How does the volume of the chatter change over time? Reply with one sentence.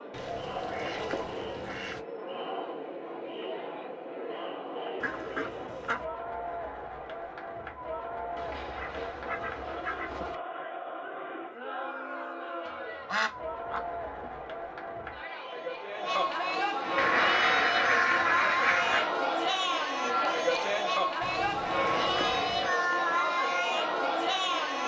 The volume of the chatter goes up.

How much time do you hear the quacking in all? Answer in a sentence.
You can hear the quacking for 10 seconds altogether.